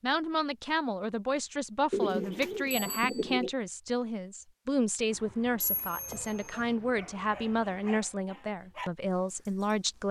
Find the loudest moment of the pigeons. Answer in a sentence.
The volume of the pigeons peaks at 2 seconds.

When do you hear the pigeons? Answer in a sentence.
You can hear the pigeons from 1.9 to 3.5 s and from 5.1 to 8.0 s.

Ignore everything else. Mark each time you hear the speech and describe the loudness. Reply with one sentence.
The speech can be heard from 0.0 to 10.0 s, at a steady volume.